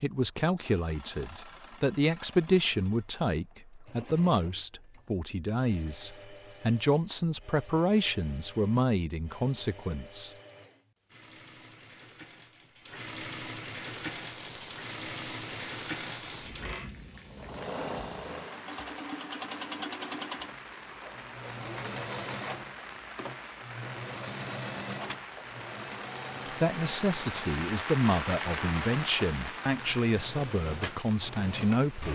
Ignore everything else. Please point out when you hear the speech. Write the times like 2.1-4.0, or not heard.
0.0-10.3, 26.5-32.0.